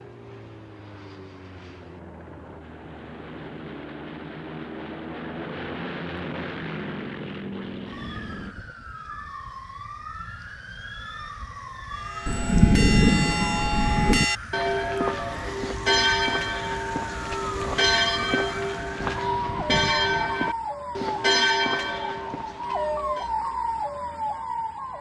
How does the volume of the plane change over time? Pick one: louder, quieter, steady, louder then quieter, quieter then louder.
louder.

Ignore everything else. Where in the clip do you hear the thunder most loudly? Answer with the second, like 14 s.
13 s.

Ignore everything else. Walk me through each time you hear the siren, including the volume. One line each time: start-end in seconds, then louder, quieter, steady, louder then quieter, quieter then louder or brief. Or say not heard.
0.0-24.9 louder.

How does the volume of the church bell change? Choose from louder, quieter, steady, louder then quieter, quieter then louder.
steady.